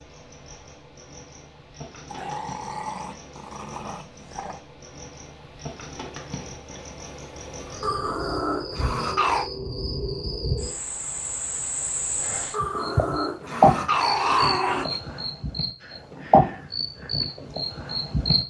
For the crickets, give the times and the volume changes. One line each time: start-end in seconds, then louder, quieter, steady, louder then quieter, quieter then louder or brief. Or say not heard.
0.0-18.4 louder.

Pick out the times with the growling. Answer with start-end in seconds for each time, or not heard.
2.0-4.6, 7.8-9.5, 12.5-15.0.